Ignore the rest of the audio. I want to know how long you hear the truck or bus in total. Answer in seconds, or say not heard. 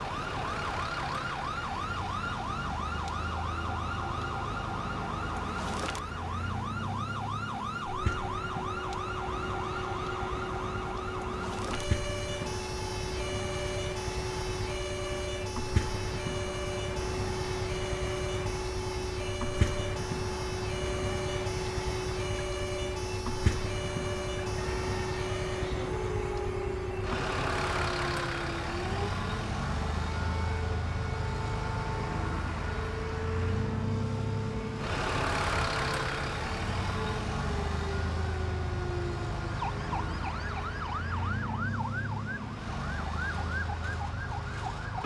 45 s.